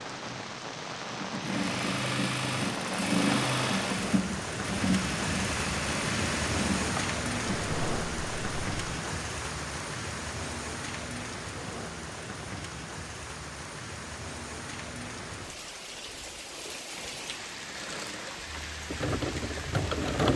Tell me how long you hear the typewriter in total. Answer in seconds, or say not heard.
not heard.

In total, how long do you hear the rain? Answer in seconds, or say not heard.
20 s.